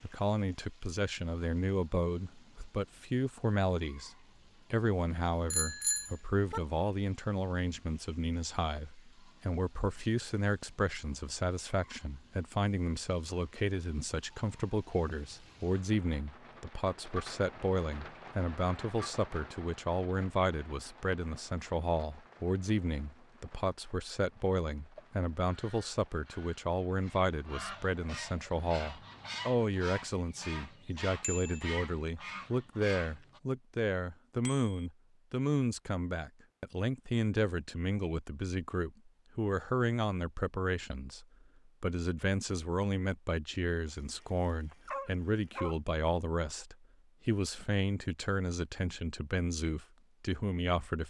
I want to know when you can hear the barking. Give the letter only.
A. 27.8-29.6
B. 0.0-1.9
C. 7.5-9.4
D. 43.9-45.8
D.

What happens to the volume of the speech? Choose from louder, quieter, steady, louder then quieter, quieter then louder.
steady.